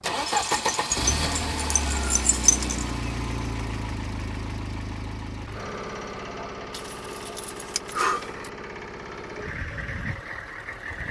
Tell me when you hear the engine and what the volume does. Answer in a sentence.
The engine can be heard from 0.0 to 11.0 s, getting quieter.